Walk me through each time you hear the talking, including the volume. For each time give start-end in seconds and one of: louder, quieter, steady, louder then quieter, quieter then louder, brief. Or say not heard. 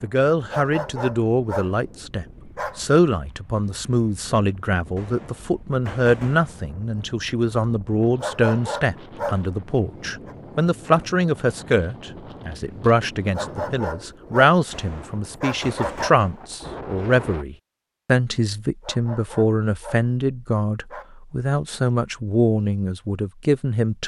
0.0-24.0 steady.